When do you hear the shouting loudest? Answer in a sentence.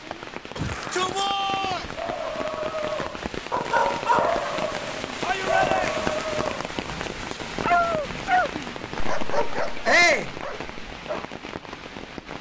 The loudest moment of the shouting is at 10 seconds.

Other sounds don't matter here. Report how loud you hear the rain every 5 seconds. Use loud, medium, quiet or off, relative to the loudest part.
loud, loud, medium.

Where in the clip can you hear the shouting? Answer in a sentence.
You can hear the shouting from 0.6 to 1.9 s, from 5.2 to 6.2 s and from 9.8 to 10.3 s.